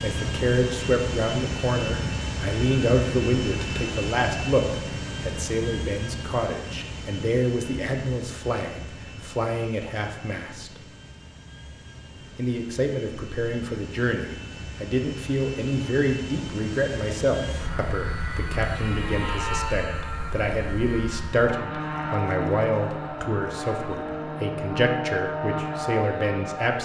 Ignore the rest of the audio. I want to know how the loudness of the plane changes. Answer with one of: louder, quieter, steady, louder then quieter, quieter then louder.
quieter then louder.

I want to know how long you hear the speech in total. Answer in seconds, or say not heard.
25 s.